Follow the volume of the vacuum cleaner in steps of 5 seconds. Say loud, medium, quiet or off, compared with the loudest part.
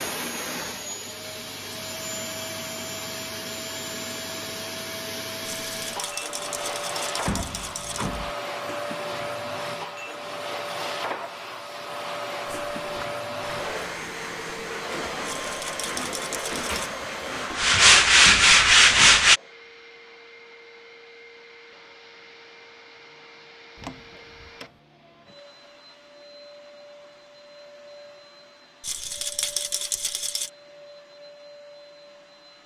loud, loud, loud, loud, quiet, quiet, quiet.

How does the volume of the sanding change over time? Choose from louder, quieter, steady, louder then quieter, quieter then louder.
louder.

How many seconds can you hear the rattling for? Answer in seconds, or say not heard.
6 s.